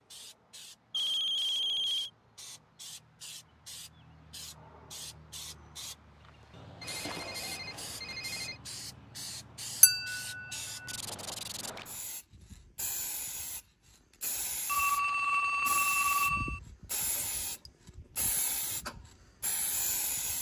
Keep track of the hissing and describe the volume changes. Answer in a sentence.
The loudness of the hissing goes up.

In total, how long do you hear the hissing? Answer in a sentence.
You can hear the hissing for 20 seconds altogether.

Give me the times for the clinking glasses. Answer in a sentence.
The clinking glasses can be heard from 9.8 to 10.9 s.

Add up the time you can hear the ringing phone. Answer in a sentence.
The ringing phone can be heard for 5 seconds in total.